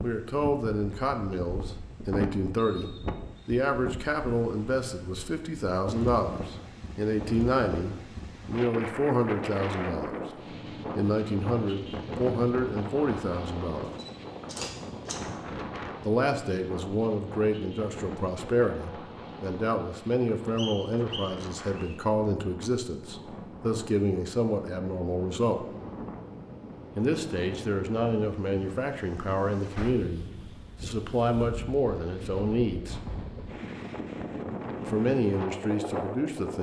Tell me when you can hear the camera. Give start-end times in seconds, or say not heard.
13.8-15.2.